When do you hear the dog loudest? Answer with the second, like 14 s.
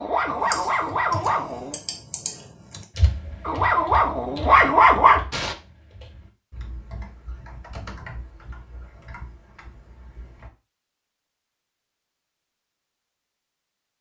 5 s.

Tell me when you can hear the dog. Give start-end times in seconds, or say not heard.
0.0-1.8, 3.4-5.5.